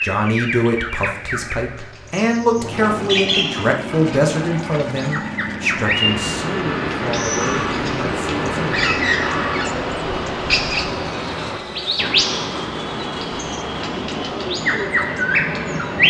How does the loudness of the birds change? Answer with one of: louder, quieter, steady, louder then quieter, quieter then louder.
louder.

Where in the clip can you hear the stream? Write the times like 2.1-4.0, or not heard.
5.8-16.0.